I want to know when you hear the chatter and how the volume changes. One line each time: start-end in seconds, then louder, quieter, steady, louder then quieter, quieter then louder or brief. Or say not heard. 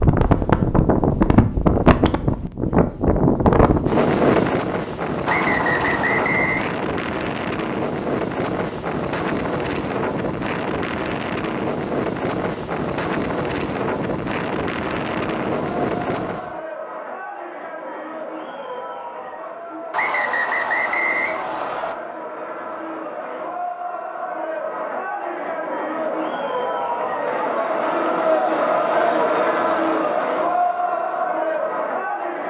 15.1-32.4 louder.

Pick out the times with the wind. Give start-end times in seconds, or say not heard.
0.0-16.6.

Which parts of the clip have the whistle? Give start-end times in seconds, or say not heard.
5.2-6.7, 19.9-21.9.